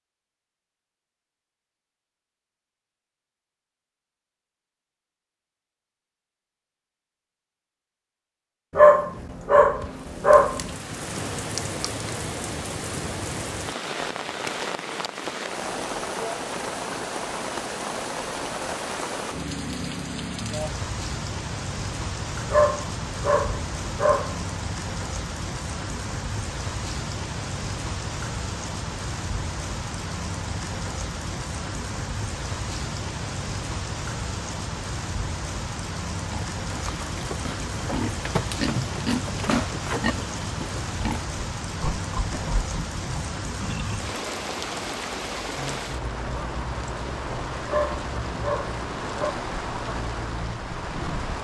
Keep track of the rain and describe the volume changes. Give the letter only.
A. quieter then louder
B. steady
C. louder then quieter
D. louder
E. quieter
B.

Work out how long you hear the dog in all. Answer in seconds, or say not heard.
6 s.